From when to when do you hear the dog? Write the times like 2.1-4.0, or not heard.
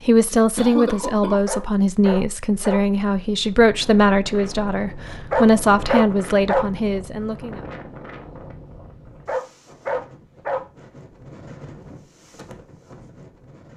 1.4-2.8, 5.3-6.7, 9.2-10.7.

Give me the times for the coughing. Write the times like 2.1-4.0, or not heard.
0.3-1.4.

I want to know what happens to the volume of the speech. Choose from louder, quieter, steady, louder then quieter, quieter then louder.
steady.